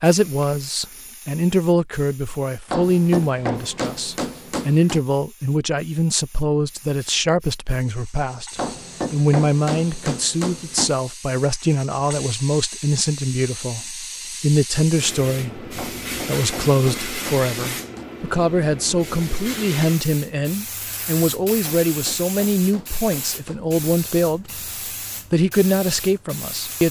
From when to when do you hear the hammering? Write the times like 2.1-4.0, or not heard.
2.6-5.0, 8.6-10.9, 15.8-18.1, 21.6-23.8.